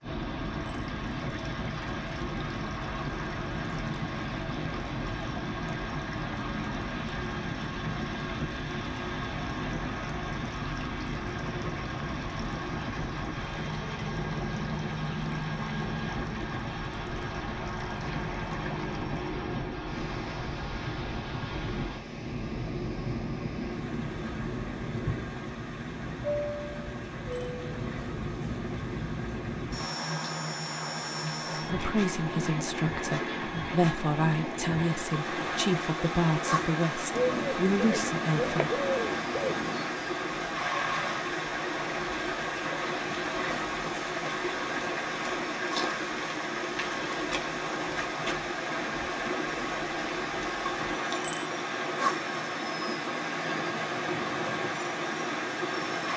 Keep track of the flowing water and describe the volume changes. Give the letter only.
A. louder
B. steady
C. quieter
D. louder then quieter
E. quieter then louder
A.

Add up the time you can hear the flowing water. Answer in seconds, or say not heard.
56 s.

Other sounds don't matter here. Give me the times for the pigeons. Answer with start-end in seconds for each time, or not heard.
37.1-40.0.